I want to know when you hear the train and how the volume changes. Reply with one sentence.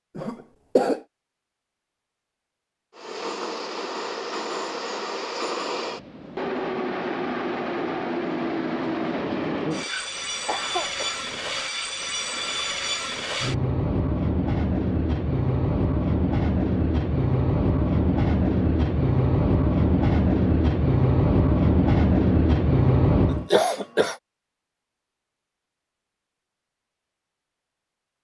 The train can be heard from 2.9 to 23.5 s, getting louder.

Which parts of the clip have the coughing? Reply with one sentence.
The coughing can be heard from 0.1 to 1.0 s, from 9.8 to 11.2 s and from 23.2 to 24.1 s.